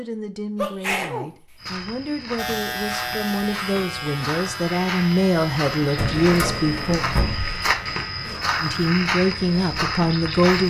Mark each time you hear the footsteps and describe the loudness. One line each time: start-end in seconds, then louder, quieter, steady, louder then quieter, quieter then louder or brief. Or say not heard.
1.6-10.6 louder.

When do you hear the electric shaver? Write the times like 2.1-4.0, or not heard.
2.4-8.3.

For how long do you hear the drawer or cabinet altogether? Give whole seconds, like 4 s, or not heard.
2 s.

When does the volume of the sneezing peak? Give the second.
1 s.